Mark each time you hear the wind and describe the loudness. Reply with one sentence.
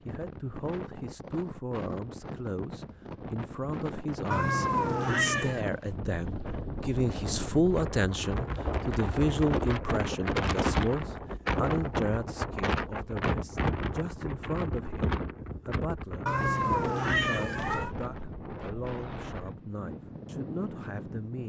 You can hear the wind from 0.0 to 21.4 s, getting louder then quieter.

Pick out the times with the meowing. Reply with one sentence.
You can hear the meowing from 4.3 to 5.7 s and from 16.2 to 17.9 s.